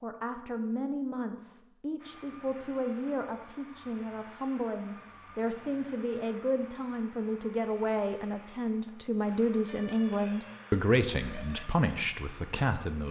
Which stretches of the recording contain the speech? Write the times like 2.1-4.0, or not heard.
0.0-13.0.